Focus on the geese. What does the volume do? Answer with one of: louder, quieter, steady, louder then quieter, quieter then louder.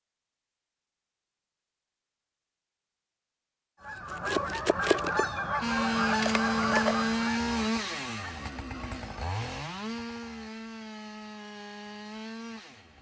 quieter.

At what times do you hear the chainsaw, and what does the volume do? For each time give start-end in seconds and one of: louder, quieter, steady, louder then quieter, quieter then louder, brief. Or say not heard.
5.6-12.9 quieter.